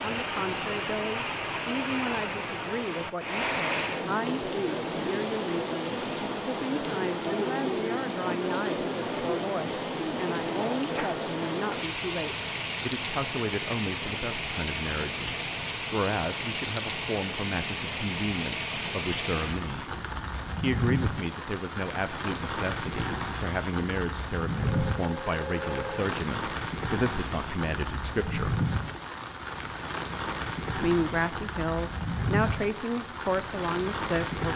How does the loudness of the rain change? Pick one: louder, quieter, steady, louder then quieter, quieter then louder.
steady.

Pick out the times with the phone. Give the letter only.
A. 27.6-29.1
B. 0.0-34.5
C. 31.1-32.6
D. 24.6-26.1
D.